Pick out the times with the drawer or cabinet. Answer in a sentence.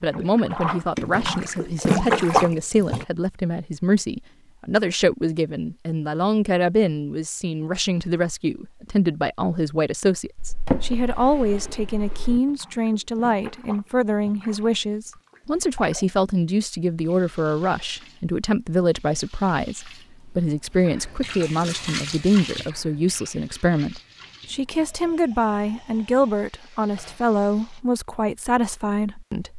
The drawer or cabinet can be heard from 10.3 to 12.4 s.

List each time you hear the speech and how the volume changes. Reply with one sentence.
You can hear the speech from 0.0 to 29.5 s, at a steady volume.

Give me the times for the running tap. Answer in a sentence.
The running tap can be heard from 0.0 to 3.0 s and from 12.4 to 27.9 s.